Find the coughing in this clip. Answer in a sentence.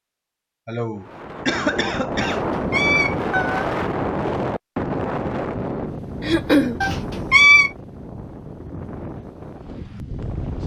You can hear the coughing from 0.7 to 2.4 s and from 6.2 to 6.8 s.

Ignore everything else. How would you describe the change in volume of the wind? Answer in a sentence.
The loudness of the wind goes down.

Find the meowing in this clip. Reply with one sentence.
The meowing can be heard from 2.2 to 3.7 s and from 6.8 to 7.7 s.